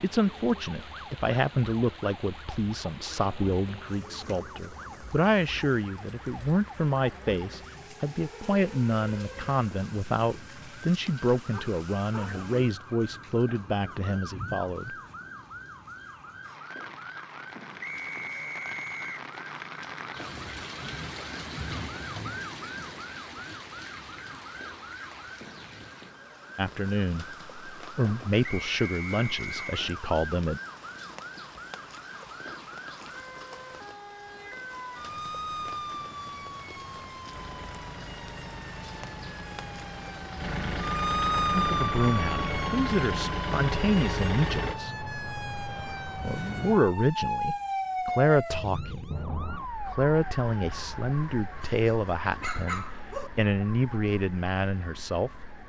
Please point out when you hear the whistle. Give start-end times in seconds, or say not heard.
17.8-19.2, 28.4-29.9.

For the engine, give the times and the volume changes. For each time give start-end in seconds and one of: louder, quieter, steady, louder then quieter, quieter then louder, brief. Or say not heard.
37.2-44.8 louder.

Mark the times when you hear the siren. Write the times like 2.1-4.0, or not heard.
0.1-55.6.